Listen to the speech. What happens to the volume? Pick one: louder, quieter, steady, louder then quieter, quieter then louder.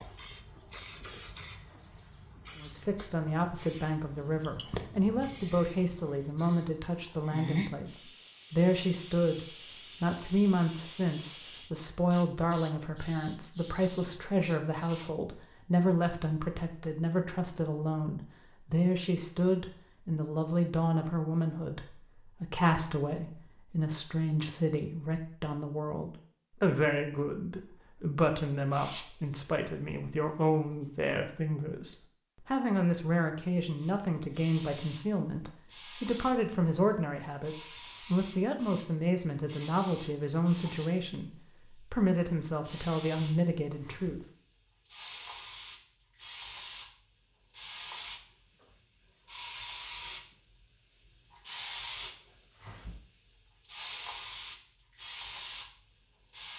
steady.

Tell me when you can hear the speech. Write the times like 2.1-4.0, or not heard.
2.5-9.4, 10.0-44.2.